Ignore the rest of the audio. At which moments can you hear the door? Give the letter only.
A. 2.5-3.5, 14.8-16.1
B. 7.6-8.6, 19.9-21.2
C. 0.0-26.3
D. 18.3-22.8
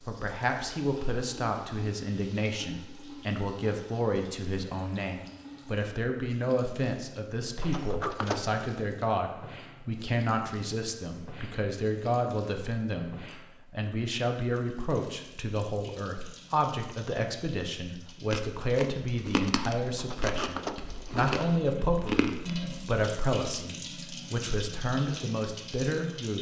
B.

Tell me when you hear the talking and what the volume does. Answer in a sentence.
The talking can be heard from 0.0 to 26.3 s, at a steady volume.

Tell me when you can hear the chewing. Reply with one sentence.
You can hear the chewing from 18.3 to 22.8 s.